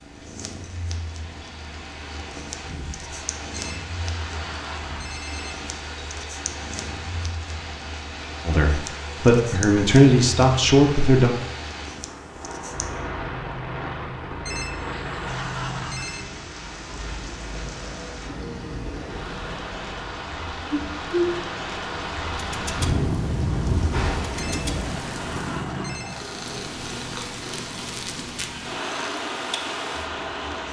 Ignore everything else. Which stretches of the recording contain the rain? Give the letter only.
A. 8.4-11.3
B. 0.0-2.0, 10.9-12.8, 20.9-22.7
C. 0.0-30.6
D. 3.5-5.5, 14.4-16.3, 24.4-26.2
C.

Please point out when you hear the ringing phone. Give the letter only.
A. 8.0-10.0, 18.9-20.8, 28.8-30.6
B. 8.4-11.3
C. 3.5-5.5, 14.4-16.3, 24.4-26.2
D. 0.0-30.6
C.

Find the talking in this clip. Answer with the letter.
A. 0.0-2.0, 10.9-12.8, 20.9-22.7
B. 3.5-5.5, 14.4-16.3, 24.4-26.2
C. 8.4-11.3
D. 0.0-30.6
C.